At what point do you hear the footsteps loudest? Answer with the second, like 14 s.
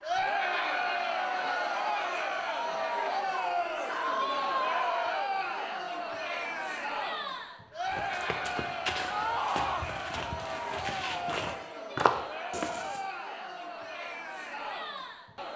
12 s.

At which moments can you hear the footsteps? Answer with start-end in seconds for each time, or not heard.
7.8-13.1.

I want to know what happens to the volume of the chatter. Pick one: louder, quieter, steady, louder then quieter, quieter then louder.
quieter.